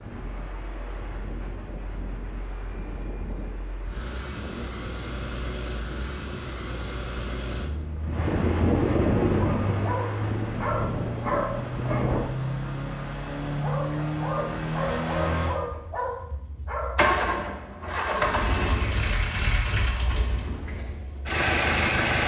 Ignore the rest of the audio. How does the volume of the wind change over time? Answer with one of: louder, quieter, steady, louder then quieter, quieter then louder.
louder then quieter.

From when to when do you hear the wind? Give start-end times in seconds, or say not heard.
0.0-12.2.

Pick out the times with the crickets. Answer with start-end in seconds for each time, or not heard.
not heard.